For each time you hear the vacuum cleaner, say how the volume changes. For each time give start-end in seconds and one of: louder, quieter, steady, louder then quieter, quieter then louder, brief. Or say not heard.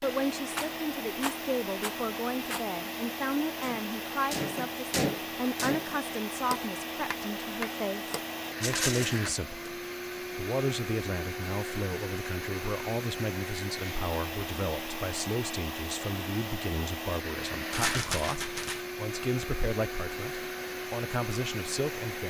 0.0-22.2 steady.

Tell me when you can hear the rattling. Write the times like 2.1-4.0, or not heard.
0.6-2.6, 8.6-9.2, 17.7-18.9.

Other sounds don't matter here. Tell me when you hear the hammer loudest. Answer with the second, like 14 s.
5 s.